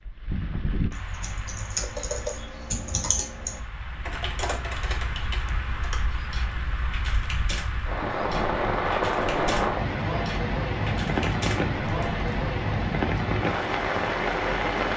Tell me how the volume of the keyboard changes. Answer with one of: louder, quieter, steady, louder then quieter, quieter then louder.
quieter.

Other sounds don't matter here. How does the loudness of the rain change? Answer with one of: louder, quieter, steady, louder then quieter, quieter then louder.
louder.